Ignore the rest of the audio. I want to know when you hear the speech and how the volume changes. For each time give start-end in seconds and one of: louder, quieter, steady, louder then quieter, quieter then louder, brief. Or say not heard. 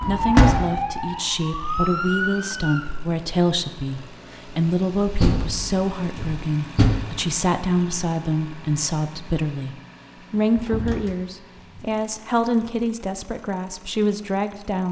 0.0-14.8 steady.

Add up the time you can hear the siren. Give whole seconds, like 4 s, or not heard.
3 s.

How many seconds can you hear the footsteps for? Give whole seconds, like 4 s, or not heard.
not heard.